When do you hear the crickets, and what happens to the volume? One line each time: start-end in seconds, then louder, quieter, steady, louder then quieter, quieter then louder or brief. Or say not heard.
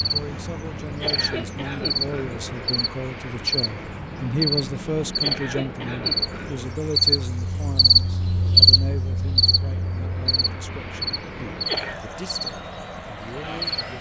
0.0-13.8 louder then quieter.